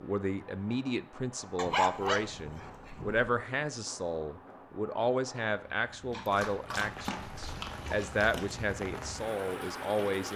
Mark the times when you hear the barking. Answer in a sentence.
The barking can be heard from 1.6 to 3.4 s and from 6.1 to 8.5 s.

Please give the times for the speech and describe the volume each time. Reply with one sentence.
The speech can be heard from 0.0 to 10.3 s, at a steady volume.